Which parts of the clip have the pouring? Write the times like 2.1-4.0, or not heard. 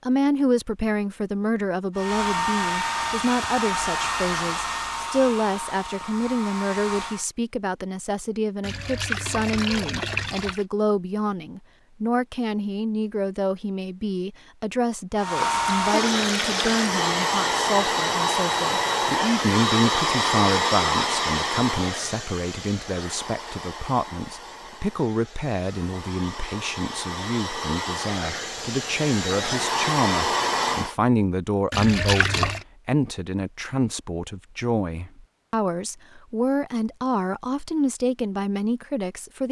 8.6-10.7, 15.4-16.9, 31.7-32.6.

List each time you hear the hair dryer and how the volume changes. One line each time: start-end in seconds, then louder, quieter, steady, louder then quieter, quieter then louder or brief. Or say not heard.
1.9-7.2 quieter
15.2-30.9 quieter then louder.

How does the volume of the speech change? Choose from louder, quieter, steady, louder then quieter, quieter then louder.
steady.